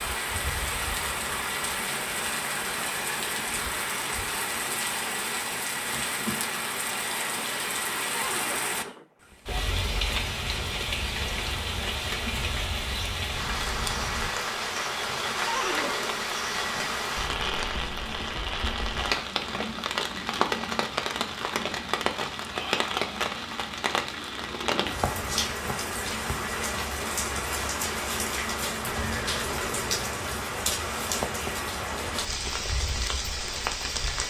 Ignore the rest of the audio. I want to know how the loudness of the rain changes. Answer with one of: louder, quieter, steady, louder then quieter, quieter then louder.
steady.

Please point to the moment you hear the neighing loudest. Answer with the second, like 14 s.
16 s.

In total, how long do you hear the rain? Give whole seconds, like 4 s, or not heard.
34 s.